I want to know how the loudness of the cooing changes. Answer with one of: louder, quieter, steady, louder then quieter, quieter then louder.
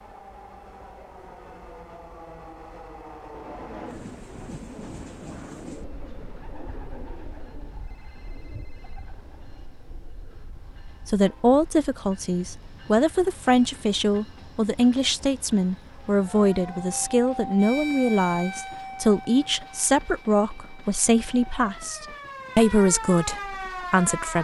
quieter.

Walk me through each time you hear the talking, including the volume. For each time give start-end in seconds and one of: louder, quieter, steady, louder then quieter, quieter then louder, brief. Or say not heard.
11.1-24.3 steady.